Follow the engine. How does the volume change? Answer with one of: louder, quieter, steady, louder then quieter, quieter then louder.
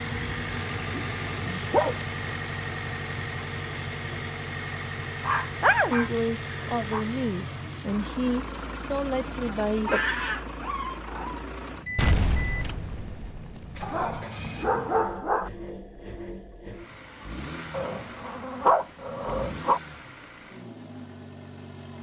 quieter.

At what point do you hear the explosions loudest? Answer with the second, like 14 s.
12 s.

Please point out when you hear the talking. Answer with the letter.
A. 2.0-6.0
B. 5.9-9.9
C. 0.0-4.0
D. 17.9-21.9
B.